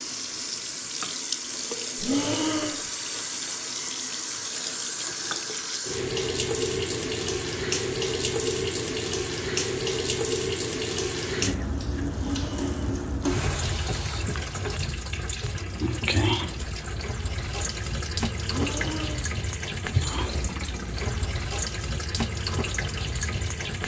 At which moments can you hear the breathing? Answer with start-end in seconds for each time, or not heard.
1.9-2.8, 12.2-12.9, 18.4-19.3.